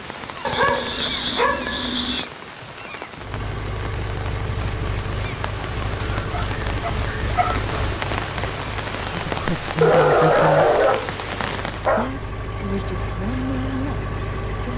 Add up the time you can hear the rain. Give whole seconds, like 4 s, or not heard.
12 s.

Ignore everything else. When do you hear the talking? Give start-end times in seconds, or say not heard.
9.0-10.7, 11.9-14.7.